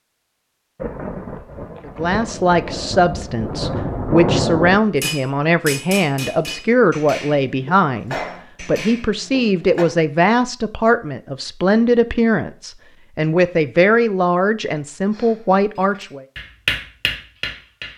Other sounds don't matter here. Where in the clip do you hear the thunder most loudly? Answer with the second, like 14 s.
4 s.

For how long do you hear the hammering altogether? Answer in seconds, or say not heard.
8 s.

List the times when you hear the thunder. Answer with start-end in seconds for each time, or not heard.
0.8-4.8.